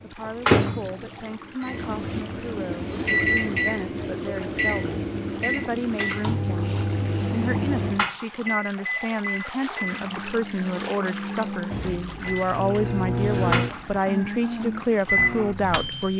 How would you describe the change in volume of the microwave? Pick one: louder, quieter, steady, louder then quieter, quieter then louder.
quieter then louder.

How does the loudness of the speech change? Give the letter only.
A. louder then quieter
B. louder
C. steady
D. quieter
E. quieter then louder
B.